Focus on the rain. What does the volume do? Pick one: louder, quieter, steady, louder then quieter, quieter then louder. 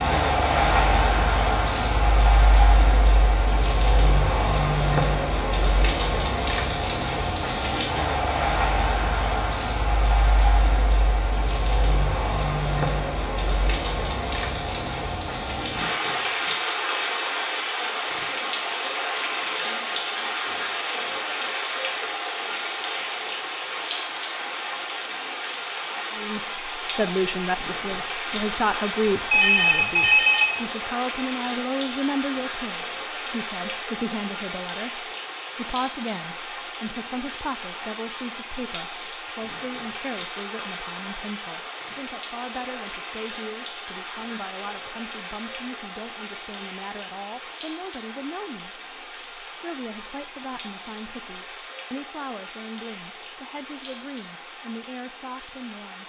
quieter.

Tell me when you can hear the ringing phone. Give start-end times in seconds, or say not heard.
29.3-30.6.